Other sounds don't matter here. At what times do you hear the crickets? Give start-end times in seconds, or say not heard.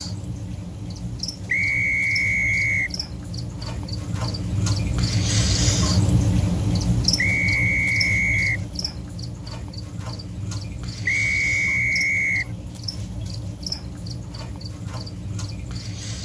0.0-16.2.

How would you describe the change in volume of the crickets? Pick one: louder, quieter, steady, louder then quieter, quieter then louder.
louder then quieter.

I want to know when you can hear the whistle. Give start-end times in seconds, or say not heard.
1.4-3.0, 7.2-8.7, 11.1-12.5.